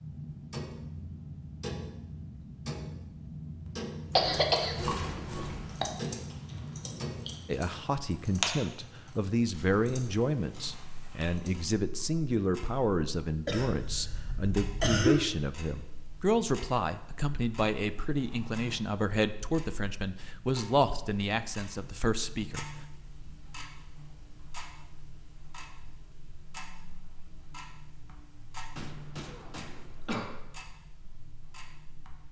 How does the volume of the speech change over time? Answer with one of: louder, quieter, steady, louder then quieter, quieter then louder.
steady.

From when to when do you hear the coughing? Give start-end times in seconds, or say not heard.
4.2-5.8, 13.4-15.2, 28.8-30.4.